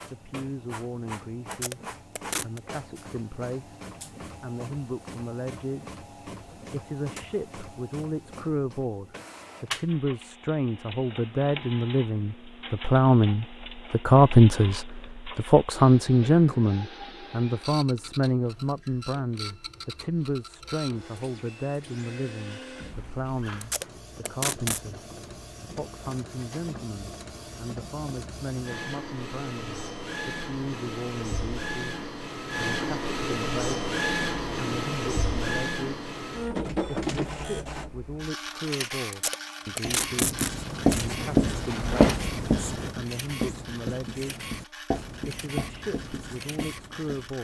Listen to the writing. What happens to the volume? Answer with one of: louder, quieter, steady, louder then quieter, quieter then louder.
quieter.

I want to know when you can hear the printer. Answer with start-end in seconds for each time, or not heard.
0.0-47.3.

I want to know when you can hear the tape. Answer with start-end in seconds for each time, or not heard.
1.5-2.6, 23.6-24.8, 39.1-41.0.